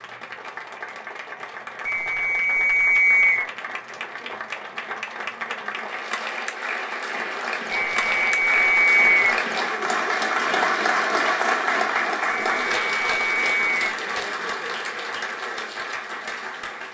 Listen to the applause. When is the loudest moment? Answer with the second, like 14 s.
11 s.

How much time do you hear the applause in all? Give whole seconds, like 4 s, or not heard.
17 s.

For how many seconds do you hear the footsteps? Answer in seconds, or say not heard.
not heard.